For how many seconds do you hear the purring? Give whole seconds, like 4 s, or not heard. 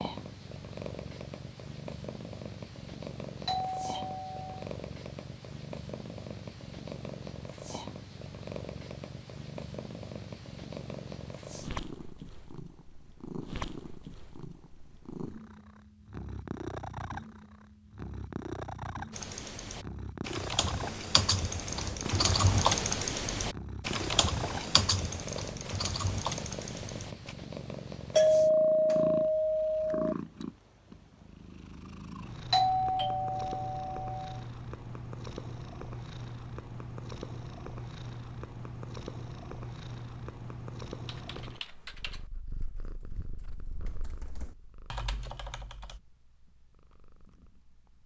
48 s.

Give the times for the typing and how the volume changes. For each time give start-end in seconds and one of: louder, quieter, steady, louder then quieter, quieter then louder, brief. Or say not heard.
19.1-27.4 louder then quieter
41.0-46.0 quieter then louder.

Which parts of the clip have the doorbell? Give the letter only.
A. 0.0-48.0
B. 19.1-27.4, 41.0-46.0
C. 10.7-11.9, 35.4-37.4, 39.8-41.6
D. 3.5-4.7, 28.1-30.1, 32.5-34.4
D.